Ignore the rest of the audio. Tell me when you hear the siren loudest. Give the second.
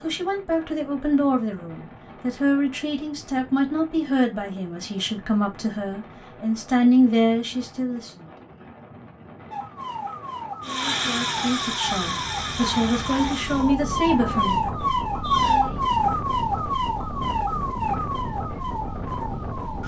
16 s.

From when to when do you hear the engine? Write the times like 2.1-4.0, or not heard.
10.6-13.8.